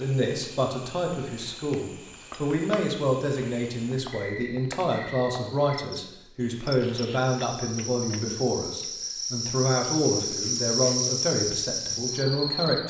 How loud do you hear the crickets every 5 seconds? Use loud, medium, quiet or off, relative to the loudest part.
quiet, medium, loud.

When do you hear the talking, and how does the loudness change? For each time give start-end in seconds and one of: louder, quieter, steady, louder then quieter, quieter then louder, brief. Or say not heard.
0.0-12.8 steady.